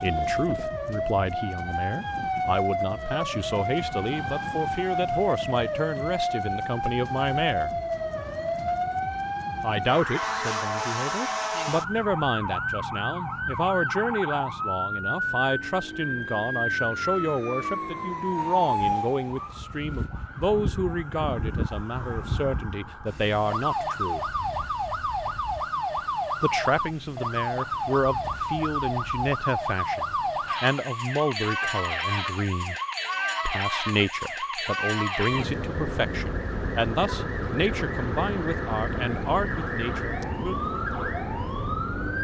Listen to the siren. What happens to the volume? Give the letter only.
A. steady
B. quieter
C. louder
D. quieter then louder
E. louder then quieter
A.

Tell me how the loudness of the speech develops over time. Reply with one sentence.
The volume of the speech stays about the same.